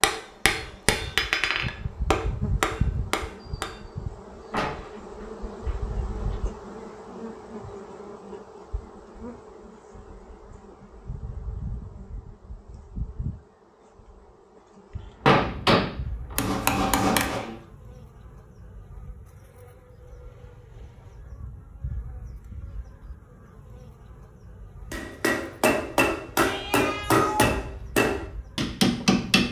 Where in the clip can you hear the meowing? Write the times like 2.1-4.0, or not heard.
26.4-27.5.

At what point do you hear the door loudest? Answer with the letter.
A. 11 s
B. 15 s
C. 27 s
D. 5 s
B.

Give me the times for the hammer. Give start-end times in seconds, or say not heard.
0.0-3.8, 15.2-17.6, 24.9-29.4.